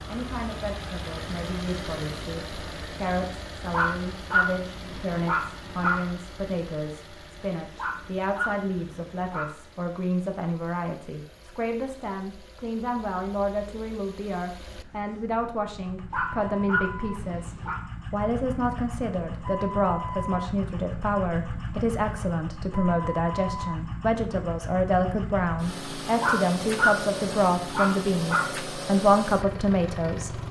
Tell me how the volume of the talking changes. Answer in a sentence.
The volume of the talking goes up.